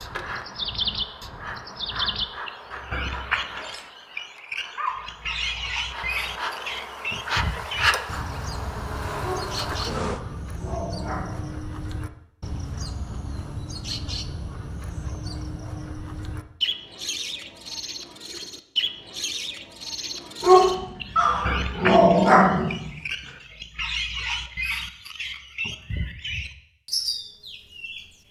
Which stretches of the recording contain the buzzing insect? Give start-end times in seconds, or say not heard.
0.0-10.2.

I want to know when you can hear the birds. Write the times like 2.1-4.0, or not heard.
0.0-28.1.